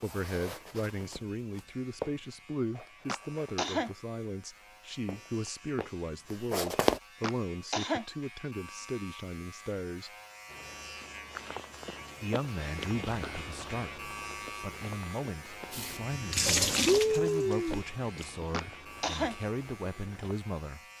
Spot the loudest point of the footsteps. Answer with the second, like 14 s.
7 s.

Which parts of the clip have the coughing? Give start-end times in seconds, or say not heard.
3.0-3.9, 7.2-8.1, 18.5-19.4.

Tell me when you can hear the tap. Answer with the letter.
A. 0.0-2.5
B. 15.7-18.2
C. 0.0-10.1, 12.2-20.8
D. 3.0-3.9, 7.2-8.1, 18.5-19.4
B.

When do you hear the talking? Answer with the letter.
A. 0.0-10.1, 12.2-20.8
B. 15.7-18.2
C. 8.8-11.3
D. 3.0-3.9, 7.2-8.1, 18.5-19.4
A.